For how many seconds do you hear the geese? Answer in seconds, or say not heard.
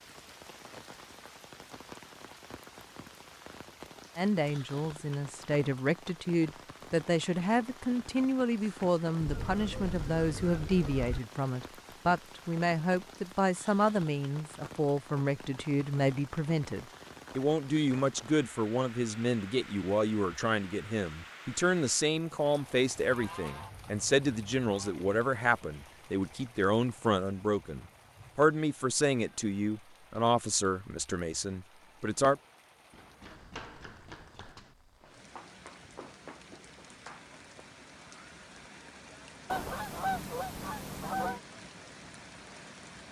6 s.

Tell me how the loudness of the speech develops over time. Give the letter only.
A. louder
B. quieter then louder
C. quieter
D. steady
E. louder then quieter
D.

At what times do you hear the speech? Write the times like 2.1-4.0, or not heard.
4.2-32.4.